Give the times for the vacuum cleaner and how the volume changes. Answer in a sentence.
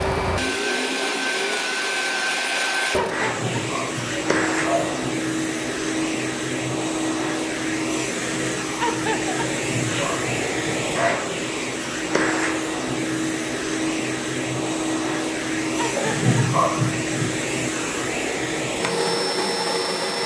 You can hear the vacuum cleaner from 0.0 to 20.2 s, at a steady volume.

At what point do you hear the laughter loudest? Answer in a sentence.
The loudest moment of the laughter is at 9 seconds.